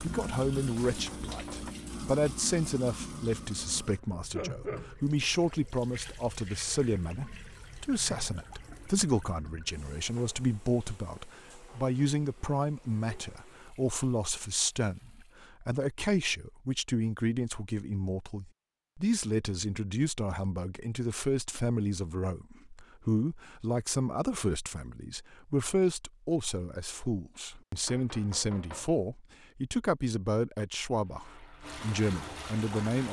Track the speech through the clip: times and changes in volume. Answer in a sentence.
You can hear the speech from 0.0 to 33.0 s, at a steady volume.